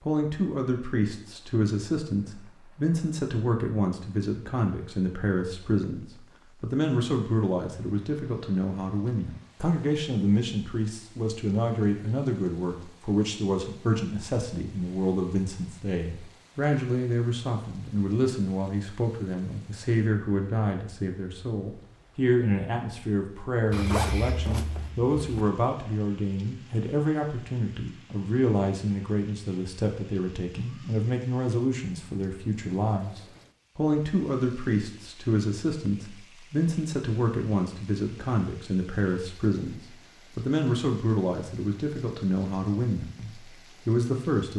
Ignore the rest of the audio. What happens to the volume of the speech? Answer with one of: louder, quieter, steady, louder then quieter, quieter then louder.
steady.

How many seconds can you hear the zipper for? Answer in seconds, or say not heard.
2 s.